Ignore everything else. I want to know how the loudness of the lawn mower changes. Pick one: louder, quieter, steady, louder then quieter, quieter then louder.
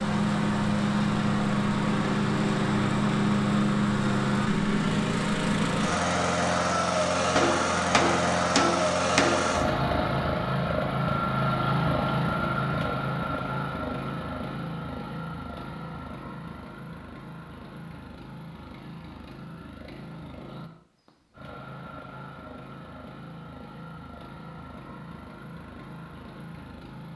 quieter.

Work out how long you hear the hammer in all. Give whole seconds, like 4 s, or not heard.
2 s.